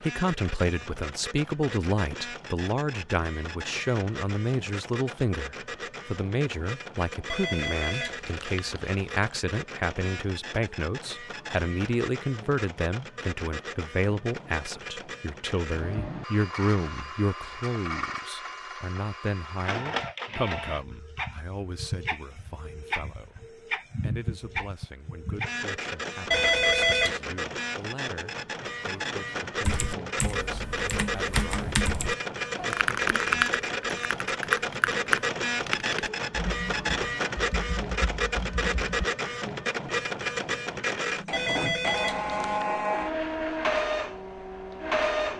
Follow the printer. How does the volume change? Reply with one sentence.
The volume of the printer goes up.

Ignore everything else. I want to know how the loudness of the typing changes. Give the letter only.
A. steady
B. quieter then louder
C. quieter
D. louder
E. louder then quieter
E.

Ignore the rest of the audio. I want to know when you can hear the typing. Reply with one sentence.
The typing can be heard from 29.6 to 39.0 s.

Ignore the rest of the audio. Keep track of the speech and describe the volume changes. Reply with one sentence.
The loudness of the speech goes down.